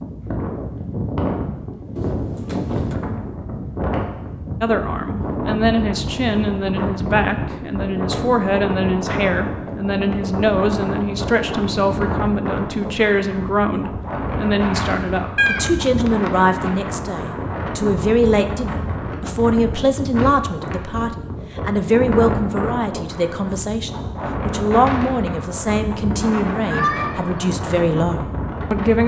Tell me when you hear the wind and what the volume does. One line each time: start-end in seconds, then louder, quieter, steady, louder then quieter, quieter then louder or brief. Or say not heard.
0.0-29.0 steady.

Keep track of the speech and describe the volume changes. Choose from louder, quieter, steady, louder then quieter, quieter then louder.
steady.